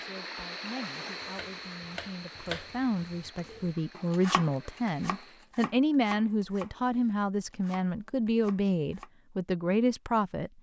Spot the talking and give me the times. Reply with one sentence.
The talking can be heard from 0.0 to 10.5 s.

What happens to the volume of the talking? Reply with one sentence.
The volume of the talking goes up.